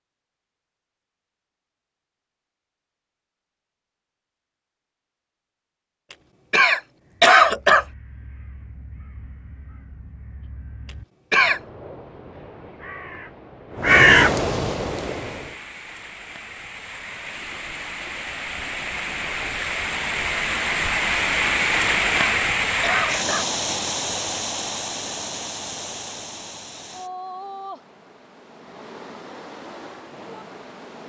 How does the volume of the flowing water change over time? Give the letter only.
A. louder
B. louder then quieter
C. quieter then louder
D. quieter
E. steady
B.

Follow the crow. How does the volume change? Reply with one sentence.
The loudness of the crow goes up.